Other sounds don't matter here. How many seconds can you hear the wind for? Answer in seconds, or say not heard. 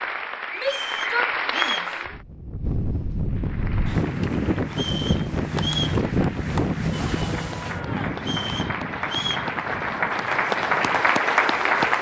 10 s.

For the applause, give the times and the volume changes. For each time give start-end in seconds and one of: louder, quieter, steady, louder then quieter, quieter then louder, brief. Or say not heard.
0.0-2.2 brief
3.2-11.9 louder.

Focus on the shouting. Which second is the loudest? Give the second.
1 s.